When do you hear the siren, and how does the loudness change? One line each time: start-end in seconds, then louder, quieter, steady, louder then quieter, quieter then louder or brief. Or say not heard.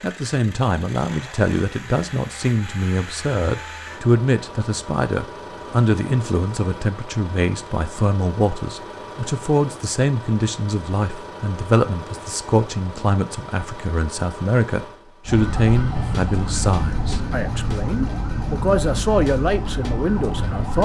15.2-20.7 steady.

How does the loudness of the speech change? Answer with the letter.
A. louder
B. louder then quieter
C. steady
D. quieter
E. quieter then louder
C.